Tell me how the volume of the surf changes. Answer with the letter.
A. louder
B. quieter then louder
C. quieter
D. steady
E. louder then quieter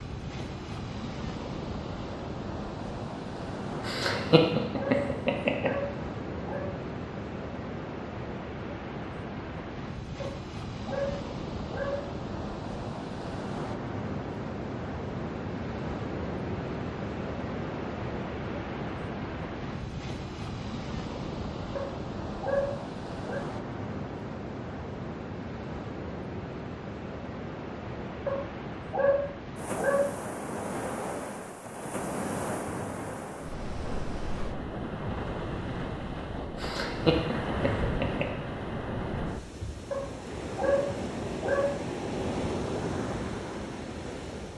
D.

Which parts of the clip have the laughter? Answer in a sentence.
The laughter can be heard from 3.8 to 5.8 s and from 36.5 to 38.3 s.